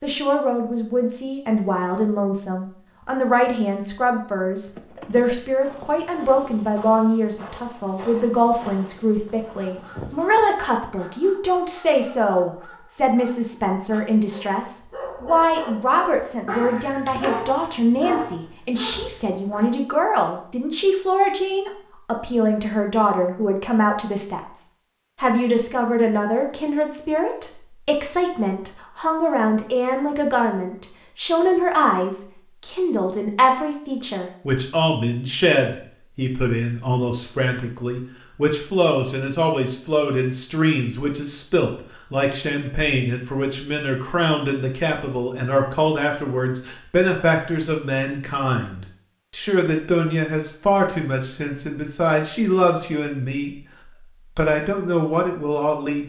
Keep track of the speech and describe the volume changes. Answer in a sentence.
The volume of the speech stays about the same.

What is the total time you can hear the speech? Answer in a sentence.
You can hear the speech for 56 seconds altogether.